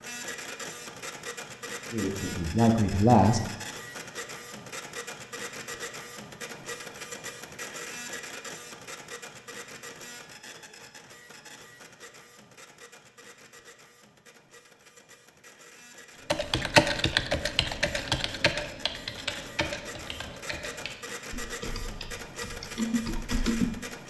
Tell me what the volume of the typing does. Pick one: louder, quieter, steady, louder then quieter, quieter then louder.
quieter then louder.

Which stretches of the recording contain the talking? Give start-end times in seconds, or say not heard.
1.9-3.5.